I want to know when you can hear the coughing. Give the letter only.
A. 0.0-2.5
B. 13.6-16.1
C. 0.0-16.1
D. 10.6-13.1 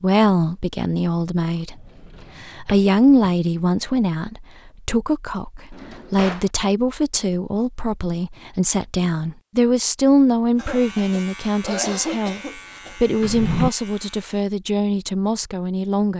D.